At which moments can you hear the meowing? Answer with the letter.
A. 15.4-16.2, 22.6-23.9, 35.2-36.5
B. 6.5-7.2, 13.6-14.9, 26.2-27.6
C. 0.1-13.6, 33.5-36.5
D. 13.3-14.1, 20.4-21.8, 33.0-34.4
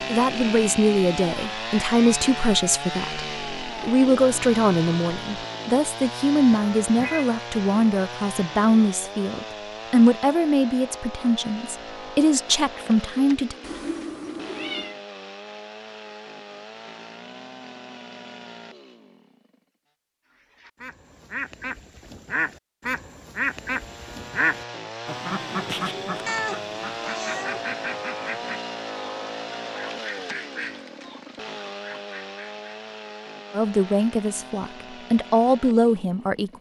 B.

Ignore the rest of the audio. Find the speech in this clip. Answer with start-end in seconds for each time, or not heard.
0.1-13.6, 33.5-36.5.